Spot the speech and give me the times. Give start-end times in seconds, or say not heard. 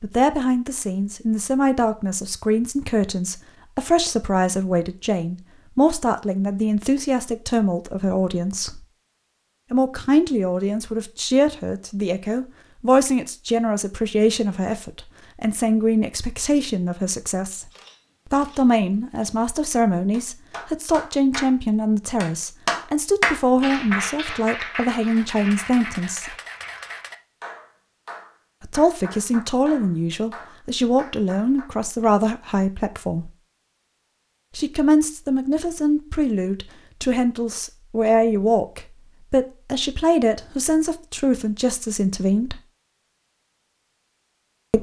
0.0-8.8, 9.7-17.7, 18.3-26.4, 28.6-33.3, 34.5-42.6.